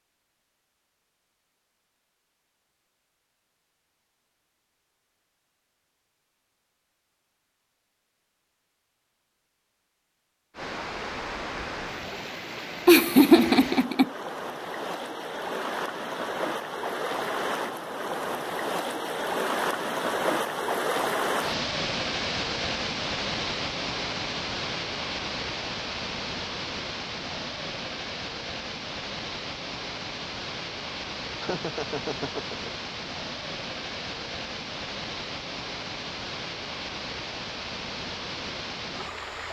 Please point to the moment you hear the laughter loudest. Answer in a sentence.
The loudest moment of the laughter is at 13 seconds.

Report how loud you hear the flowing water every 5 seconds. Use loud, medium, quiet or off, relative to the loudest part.
off, off, medium, loud, loud, medium, medium, medium.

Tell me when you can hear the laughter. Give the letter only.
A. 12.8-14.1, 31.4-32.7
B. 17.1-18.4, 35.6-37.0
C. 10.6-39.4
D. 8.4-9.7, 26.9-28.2
A.